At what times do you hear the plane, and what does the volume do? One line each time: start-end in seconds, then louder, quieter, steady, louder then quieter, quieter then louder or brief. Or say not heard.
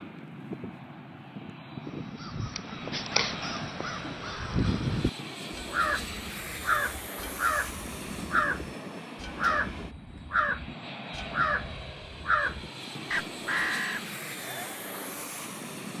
0.0-15.9 steady.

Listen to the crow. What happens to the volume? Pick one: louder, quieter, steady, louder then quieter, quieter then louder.
steady.